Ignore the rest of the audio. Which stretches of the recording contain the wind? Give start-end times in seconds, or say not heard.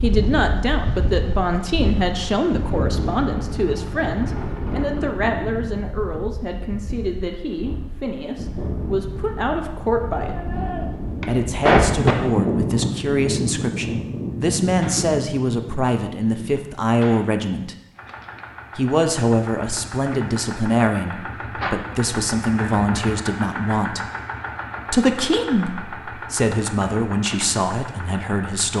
0.0-16.7.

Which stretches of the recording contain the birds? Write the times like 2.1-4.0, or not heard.
not heard.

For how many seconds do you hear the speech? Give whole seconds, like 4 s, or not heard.
26 s.